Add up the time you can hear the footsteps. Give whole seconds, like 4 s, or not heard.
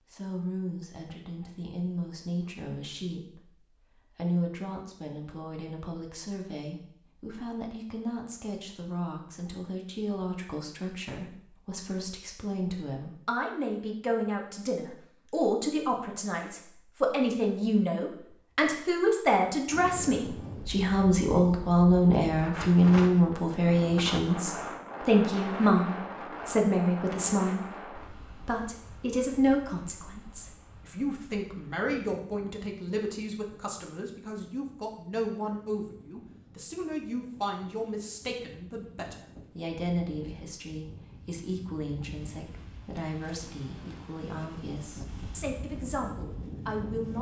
not heard.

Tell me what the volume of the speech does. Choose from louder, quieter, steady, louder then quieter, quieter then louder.
louder then quieter.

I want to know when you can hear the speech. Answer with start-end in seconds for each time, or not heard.
0.1-47.1.